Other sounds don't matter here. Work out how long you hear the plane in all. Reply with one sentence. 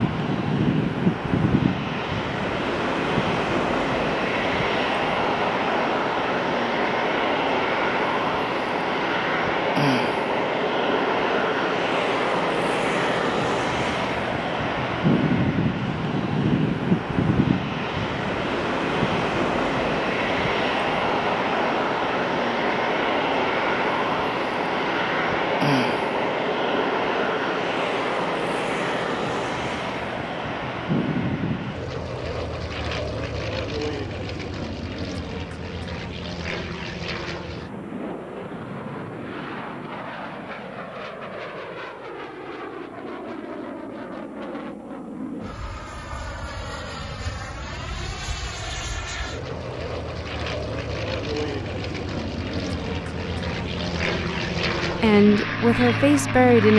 The plane can be heard for 57 seconds in total.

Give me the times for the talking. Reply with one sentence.
You can hear the talking from 55.0 to 56.7 s.